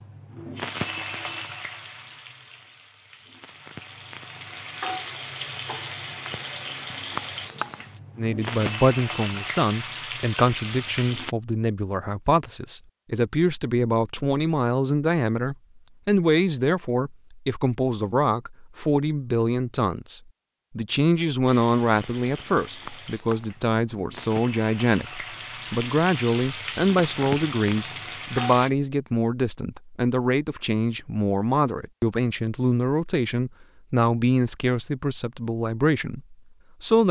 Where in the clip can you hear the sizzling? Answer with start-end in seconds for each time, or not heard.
0.0-11.3, 21.4-28.7.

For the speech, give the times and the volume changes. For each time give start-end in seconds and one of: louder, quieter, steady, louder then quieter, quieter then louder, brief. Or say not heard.
8.2-37.0 steady.